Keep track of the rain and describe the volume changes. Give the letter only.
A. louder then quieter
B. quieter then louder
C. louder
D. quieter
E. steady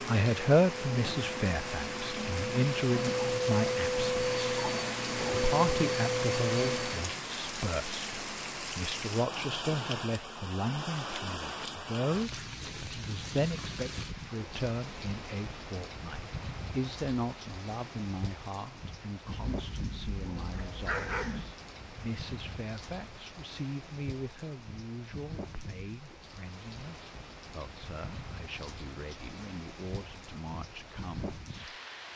D.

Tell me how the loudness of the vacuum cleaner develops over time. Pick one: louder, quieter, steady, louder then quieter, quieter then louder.
louder.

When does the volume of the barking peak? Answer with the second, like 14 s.
21 s.